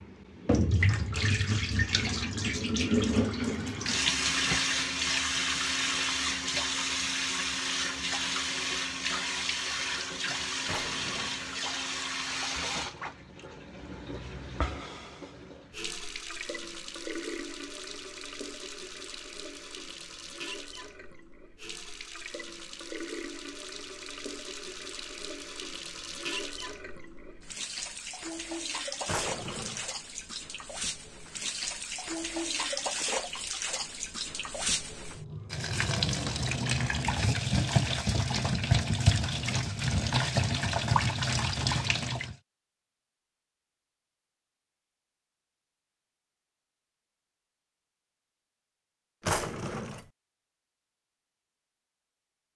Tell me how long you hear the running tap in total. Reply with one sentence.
The running tap can be heard for 42 seconds in total.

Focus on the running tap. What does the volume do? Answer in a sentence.
The volume of the running tap goes down, then up.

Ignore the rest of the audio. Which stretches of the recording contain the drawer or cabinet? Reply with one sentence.
The drawer or cabinet can be heard from 10.7 to 11.5 s, from 29.1 to 29.9 s and from 49.2 to 50.0 s.